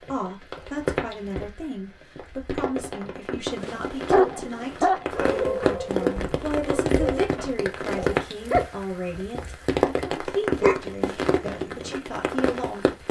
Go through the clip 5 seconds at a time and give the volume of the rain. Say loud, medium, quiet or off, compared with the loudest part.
medium, loud, loud.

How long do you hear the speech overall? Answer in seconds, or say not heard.
13 s.